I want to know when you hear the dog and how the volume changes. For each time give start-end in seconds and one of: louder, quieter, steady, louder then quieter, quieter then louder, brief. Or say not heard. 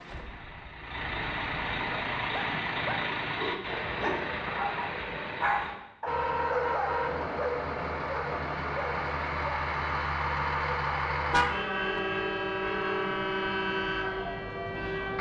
1.9-11.4 louder then quieter.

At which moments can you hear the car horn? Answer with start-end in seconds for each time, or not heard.
11.3-12.0.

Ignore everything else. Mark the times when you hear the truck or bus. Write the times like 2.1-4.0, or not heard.
0.0-15.1.